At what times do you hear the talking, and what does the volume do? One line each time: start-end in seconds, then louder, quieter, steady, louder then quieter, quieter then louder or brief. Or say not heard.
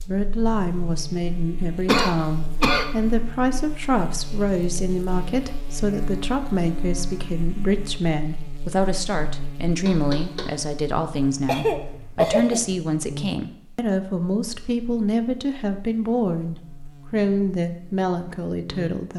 0.0-19.1 steady.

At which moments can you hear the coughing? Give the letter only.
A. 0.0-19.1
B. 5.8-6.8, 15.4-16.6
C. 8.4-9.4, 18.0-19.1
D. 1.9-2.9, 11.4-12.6
D.